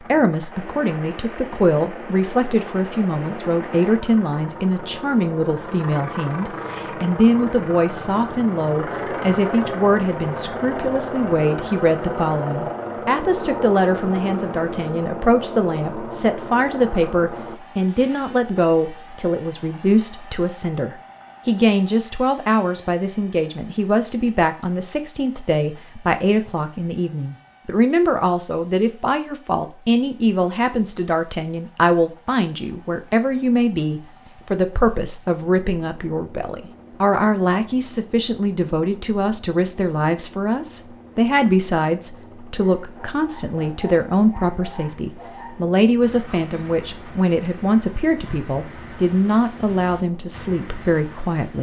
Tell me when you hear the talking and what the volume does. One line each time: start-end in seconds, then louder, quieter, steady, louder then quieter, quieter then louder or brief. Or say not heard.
0.0-51.5 steady.